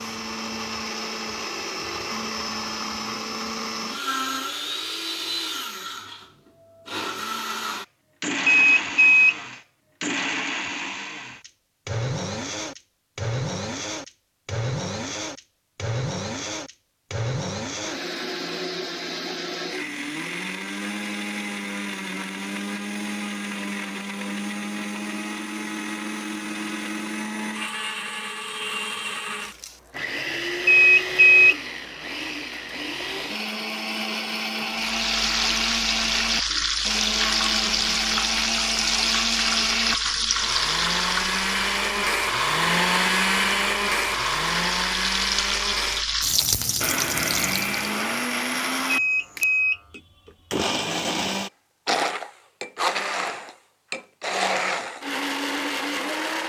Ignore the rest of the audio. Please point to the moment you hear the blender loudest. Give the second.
43 s.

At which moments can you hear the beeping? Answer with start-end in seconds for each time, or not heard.
8.4-9.3, 30.6-31.6, 48.9-50.0.